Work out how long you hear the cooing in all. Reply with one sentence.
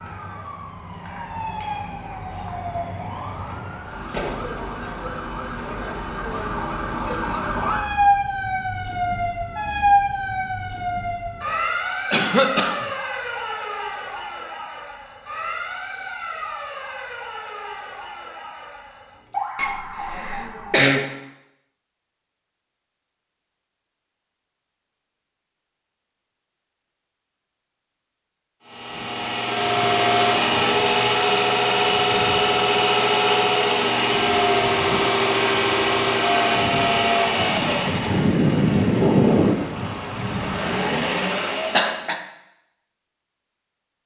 You can't hear the cooing here.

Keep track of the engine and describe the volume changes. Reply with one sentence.
The volume of the engine stays about the same.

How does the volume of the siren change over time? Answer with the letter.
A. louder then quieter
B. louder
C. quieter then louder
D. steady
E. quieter
A.